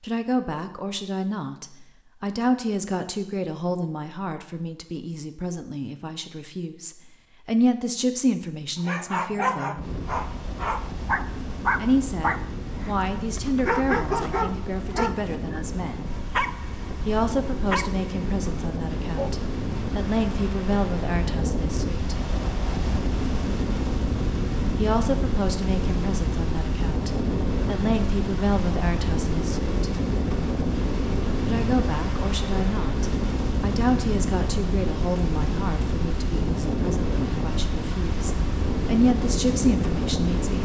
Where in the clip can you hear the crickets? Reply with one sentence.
The crickets can't be heard in this clip.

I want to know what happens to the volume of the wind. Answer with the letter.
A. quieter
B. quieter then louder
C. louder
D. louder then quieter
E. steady
C.